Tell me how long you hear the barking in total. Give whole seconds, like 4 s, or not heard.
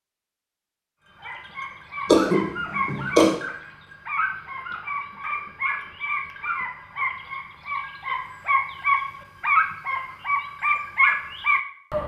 11 s.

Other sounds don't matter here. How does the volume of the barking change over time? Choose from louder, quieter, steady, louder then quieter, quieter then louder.
louder.